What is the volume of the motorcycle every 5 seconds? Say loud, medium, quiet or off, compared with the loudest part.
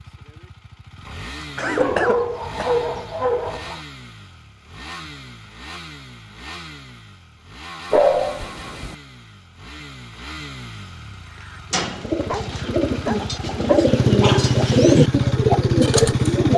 quiet, quiet, medium, loud.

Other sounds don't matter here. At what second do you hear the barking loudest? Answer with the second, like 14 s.
8 s.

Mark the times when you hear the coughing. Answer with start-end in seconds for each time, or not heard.
1.1-2.8.